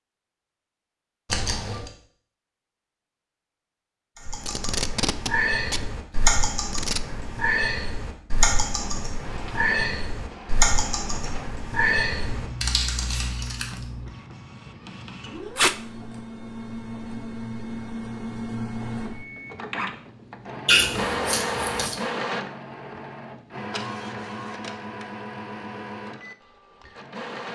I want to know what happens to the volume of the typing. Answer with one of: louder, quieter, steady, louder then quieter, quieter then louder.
steady.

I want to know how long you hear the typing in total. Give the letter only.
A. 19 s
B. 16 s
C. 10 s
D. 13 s
C.